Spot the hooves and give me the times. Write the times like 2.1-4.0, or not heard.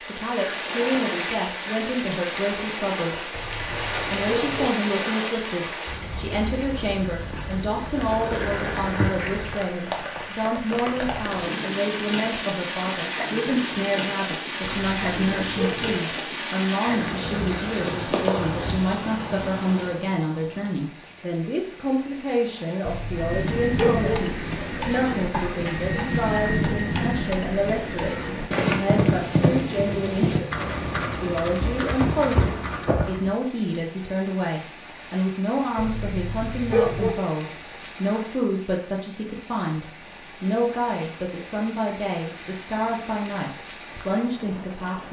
23.1-33.3.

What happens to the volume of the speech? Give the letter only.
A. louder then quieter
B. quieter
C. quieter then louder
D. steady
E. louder
D.